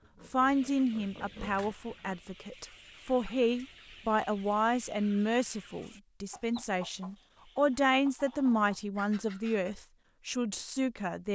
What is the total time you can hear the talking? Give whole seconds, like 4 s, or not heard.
11 s.